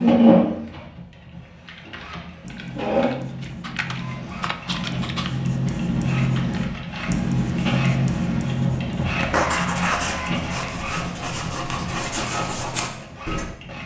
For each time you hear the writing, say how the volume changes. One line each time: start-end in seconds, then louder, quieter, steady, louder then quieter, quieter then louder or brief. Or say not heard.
2.4-13.6 louder then quieter.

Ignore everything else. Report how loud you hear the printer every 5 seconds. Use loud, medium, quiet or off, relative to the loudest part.
loud, medium, medium.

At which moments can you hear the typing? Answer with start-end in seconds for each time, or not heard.
1.4-7.1.